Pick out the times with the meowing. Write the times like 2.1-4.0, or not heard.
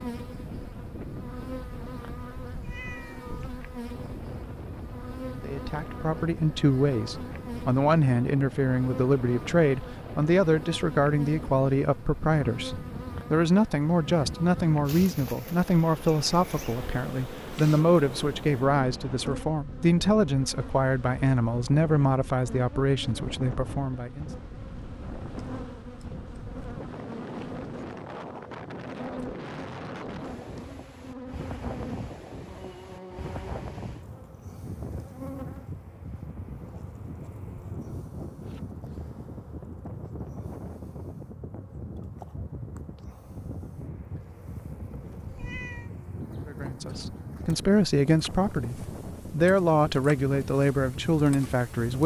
2.5-3.5, 45.2-45.9.